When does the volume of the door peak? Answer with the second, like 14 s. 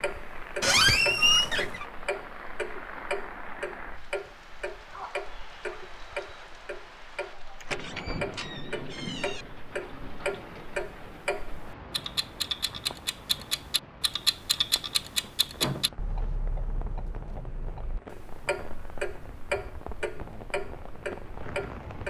1 s.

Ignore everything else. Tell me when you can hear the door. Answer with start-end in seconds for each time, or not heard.
0.6-1.9, 7.6-9.4, 15.6-16.4.